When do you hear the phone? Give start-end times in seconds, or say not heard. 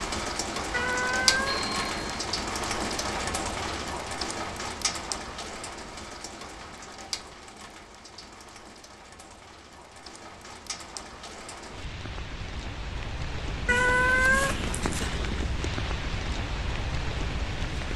1.4-2.3.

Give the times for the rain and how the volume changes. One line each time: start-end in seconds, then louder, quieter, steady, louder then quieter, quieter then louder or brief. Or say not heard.
0.0-17.9 quieter then louder.